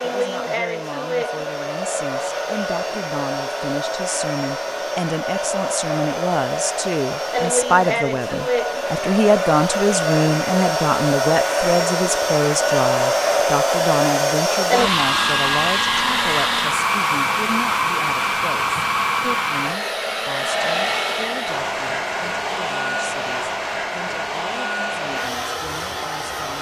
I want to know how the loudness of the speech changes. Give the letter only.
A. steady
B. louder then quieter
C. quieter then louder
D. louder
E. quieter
B.